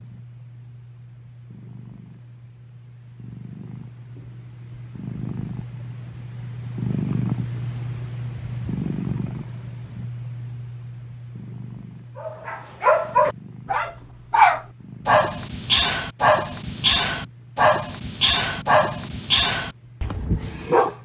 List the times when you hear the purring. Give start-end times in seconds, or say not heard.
0.0-21.0.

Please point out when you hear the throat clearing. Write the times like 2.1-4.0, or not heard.
not heard.